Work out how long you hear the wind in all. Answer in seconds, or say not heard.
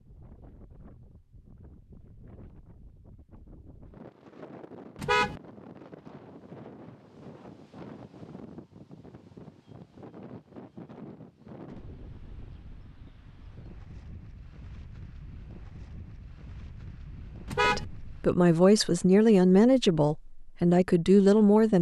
18 s.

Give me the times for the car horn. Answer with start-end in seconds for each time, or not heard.
5.0-5.4, 17.4-17.9.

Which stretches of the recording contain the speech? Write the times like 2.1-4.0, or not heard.
17.6-21.7.